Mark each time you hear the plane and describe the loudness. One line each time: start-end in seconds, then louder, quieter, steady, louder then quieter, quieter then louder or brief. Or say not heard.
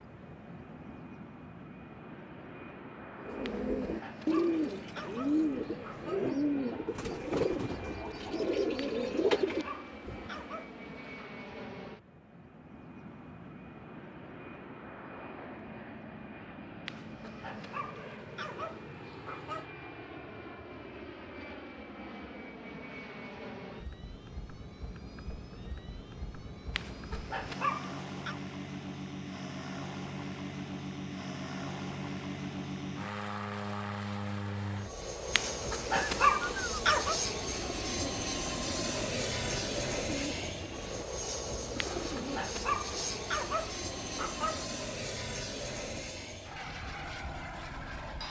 0.0-48.2 louder.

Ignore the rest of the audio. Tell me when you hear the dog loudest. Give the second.
36 s.